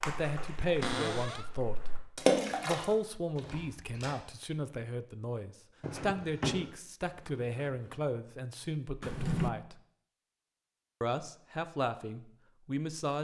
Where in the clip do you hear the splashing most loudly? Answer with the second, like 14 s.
2 s.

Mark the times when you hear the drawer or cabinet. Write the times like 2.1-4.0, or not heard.
0.8-1.5, 5.8-6.7, 9.0-9.5.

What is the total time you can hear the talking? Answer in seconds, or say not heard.
11 s.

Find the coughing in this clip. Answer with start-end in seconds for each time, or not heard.
not heard.